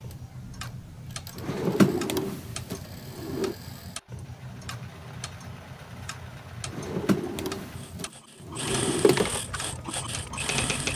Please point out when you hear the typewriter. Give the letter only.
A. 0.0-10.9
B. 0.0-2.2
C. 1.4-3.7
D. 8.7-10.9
D.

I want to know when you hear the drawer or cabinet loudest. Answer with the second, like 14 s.
2 s.